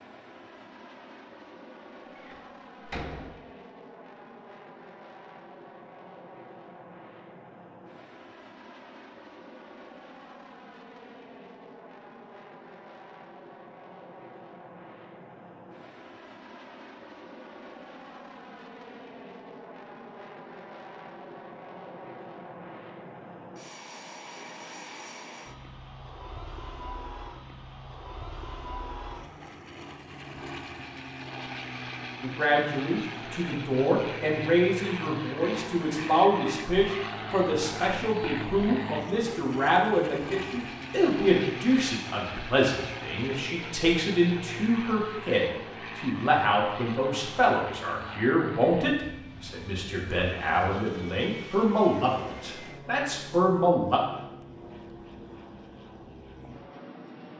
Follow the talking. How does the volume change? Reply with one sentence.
The volume of the talking stays about the same.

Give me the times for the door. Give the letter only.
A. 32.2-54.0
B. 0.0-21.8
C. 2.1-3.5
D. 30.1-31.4
C.